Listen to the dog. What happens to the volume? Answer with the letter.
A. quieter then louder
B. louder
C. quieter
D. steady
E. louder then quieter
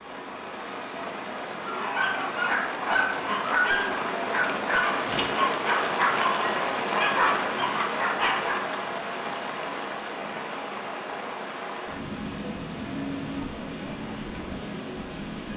D.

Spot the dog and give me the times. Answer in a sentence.
The dog can be heard from 1.6 to 8.6 s.